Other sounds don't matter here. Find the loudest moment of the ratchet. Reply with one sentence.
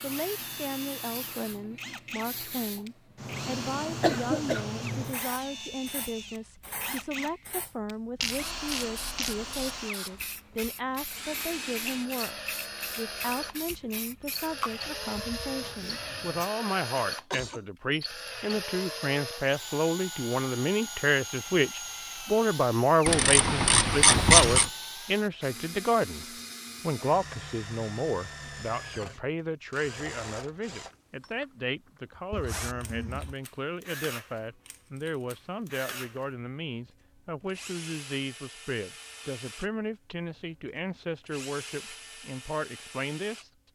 The loudest moment of the ratchet is at 24 seconds.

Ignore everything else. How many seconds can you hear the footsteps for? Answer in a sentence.
You can't hear the footsteps here.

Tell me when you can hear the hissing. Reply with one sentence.
The hissing can be heard from 0.0 to 16.5 s.